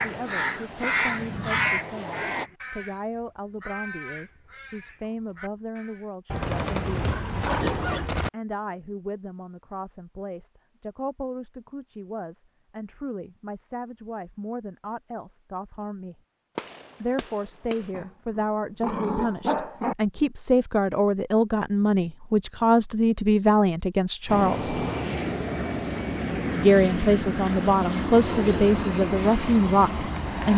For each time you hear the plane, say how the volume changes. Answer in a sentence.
You can hear the plane briefly from 0.0 to 2.5 s; and from 24.2 to 30.5 s, at a steady volume.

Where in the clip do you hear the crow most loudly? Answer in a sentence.
The volume of the crow peaks at 2 seconds.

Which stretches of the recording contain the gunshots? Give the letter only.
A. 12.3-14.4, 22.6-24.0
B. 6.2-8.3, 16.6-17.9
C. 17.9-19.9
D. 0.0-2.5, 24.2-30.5
B.